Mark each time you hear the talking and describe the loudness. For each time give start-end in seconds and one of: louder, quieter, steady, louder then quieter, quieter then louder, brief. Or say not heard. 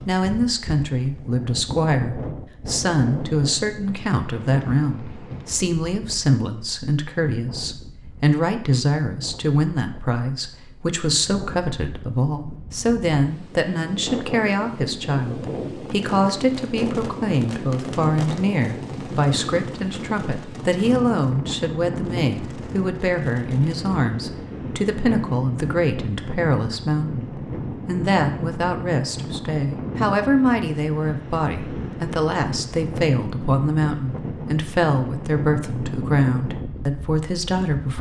0.1-37.9 steady.